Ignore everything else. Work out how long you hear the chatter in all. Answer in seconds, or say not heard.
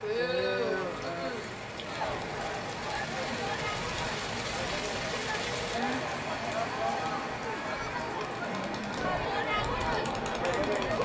11 s.